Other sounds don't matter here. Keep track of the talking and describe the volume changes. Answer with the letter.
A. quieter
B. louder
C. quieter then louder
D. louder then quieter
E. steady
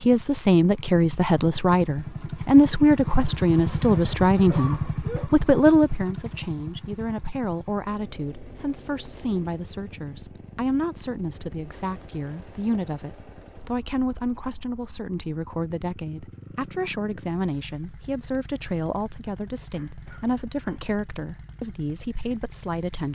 A.